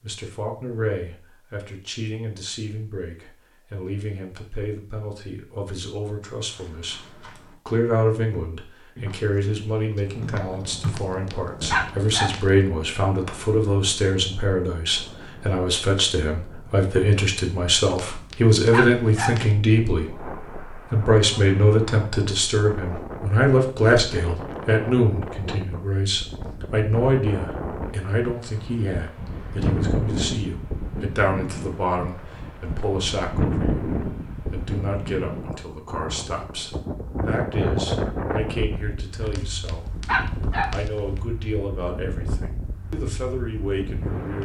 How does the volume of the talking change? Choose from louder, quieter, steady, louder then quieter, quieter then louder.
louder then quieter.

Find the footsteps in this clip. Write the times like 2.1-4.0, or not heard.
6.5-12.0.